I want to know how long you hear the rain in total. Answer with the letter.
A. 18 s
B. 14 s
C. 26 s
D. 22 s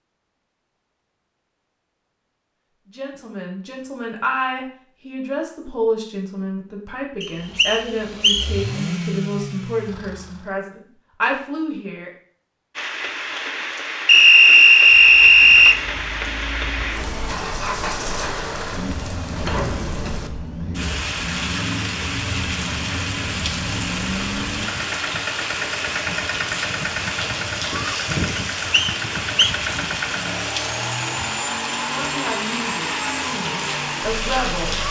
D.